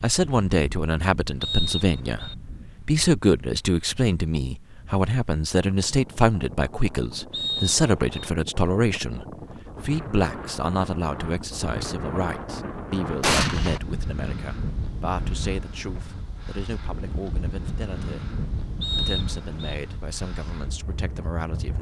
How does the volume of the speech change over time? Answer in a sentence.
The volume of the speech goes down.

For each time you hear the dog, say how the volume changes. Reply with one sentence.
You can't hear the dog here.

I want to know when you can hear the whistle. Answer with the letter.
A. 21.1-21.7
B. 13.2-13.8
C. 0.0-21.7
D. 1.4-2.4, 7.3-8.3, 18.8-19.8
D.